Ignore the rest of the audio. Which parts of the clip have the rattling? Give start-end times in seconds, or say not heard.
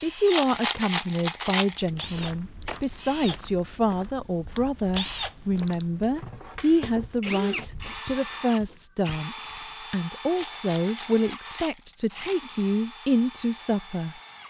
0.2-1.9, 10.3-12.5.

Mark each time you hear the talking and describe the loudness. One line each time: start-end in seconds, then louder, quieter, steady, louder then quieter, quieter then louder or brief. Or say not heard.
0.0-14.2 steady.